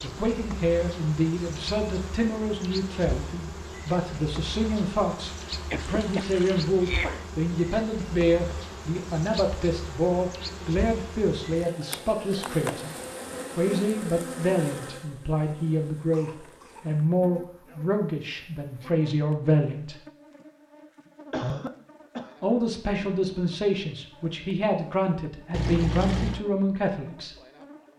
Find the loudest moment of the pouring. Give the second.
26 s.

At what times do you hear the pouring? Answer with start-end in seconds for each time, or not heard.
5.8-6.7, 25.5-26.4.